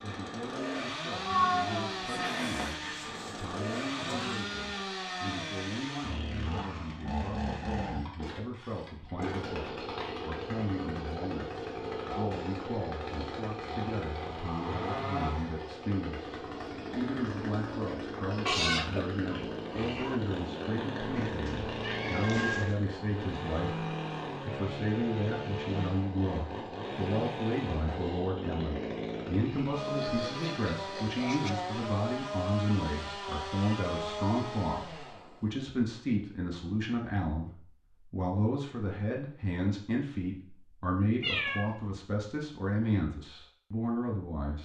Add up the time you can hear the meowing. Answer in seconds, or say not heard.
4 s.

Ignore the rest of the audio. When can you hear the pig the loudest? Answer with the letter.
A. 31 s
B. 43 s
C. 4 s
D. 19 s
D.